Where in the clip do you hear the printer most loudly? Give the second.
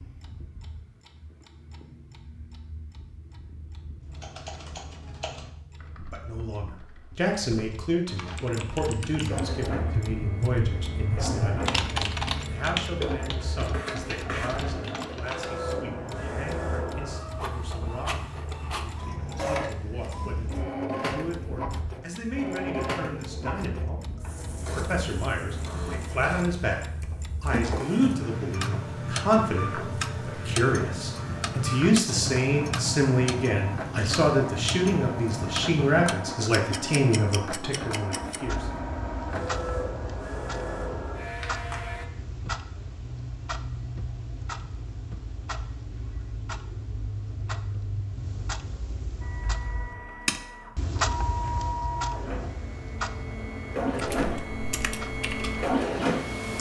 56 s.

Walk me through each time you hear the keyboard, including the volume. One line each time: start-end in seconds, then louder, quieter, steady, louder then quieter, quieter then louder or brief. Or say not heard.
4.0-15.6 louder then quieter
54.0-56.5 brief.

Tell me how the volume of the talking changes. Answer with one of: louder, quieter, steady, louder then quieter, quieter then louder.
quieter then louder.